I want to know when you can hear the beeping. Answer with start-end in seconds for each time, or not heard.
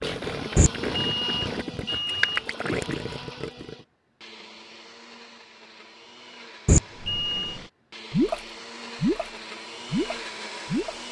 0.6-2.4, 6.7-7.5.